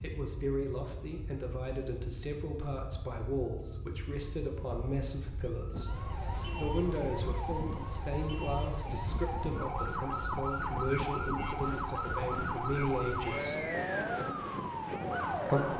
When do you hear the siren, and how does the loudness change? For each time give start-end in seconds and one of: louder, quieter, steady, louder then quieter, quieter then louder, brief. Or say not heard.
0.0-15.7 louder.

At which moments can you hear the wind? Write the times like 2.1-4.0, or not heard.
5.7-15.7.